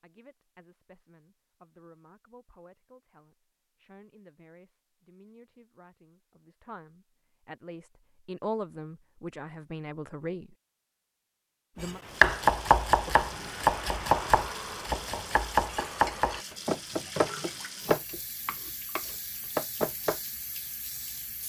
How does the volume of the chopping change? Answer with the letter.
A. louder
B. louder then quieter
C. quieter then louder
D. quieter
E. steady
D.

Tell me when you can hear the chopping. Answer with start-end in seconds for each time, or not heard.
11.8-20.2.